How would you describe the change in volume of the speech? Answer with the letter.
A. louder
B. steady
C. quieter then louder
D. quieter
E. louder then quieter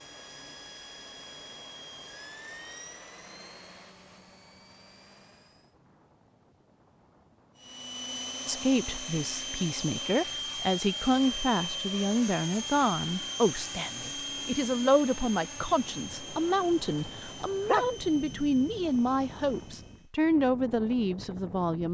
B.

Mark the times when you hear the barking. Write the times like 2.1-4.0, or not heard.
17.0-17.9.